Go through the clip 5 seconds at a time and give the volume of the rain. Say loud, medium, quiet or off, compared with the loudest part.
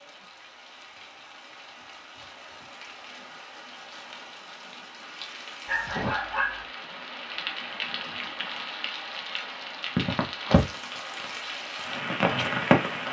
quiet, medium, loud.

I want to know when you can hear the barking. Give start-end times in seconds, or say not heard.
5.7-6.7.